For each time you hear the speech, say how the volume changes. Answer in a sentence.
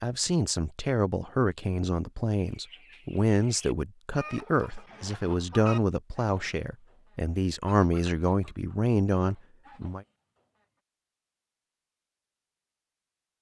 The speech can be heard from 0.0 to 10.1 s, at a steady volume.